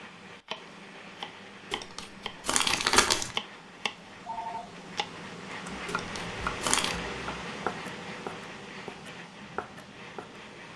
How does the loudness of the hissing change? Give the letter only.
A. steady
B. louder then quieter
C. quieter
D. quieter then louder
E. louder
B.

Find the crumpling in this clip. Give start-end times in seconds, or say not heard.
1.7-3.4, 5.8-7.0.